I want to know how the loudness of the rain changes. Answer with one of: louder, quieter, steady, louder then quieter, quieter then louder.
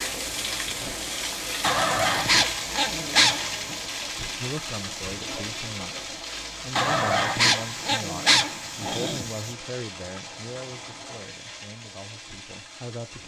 quieter.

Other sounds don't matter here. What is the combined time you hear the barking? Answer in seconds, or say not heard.
5 s.